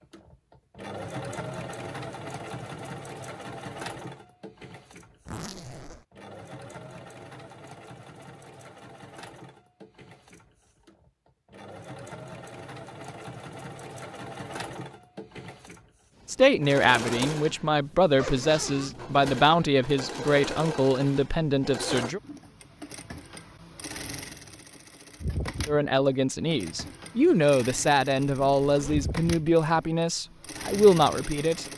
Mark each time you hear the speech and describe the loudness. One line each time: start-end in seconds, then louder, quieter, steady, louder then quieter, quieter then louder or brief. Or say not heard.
16.2-22.2 steady
25.6-31.6 louder.